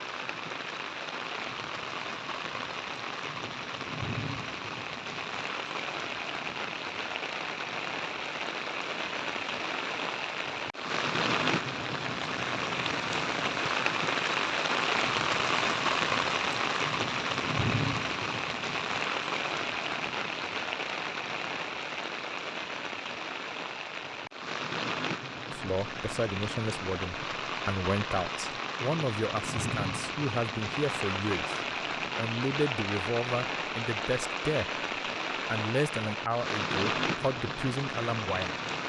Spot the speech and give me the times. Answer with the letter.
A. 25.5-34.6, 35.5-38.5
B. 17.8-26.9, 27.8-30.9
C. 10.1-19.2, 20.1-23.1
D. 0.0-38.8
A.